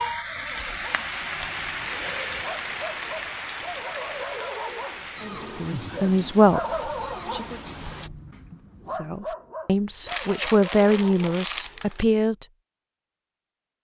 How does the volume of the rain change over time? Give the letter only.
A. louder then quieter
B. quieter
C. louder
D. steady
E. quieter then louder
B.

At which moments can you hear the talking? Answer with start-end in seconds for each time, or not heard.
5.2-7.5, 8.9-12.4.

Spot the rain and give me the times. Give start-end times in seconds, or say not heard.
0.0-8.1.